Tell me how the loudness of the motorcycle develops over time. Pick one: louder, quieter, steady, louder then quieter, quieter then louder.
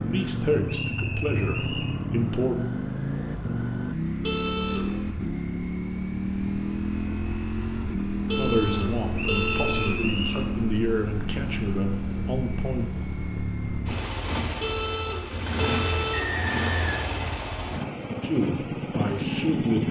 steady.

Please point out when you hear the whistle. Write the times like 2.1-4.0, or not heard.
0.7-1.9, 9.2-10.4, 16.1-17.9.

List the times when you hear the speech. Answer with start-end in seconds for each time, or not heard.
0.1-2.5, 8.3-12.8, 18.2-19.8.